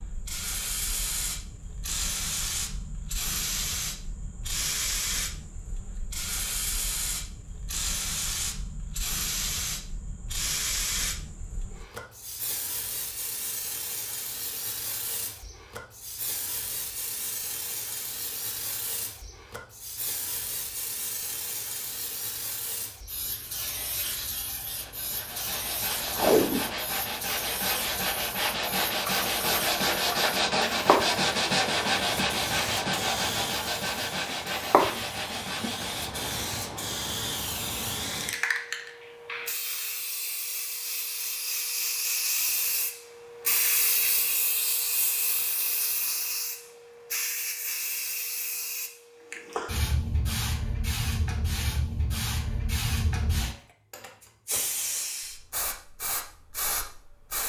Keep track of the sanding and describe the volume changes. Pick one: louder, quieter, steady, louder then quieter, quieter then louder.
louder then quieter.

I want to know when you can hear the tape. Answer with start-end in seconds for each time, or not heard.
26.1-26.8.